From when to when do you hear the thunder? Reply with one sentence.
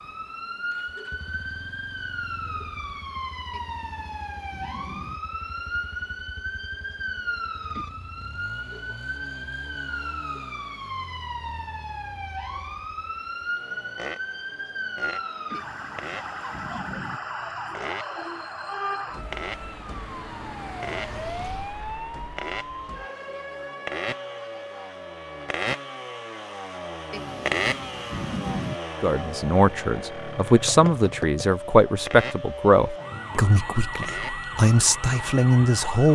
You can hear the thunder from 3.5 to 5.2 s, from 15.5 to 17.2 s and from 27.1 to 28.8 s.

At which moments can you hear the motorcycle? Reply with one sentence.
You can hear the motorcycle from 0.0 to 36.0 s.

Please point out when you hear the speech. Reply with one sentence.
The speech can be heard from 29.0 to 36.1 s.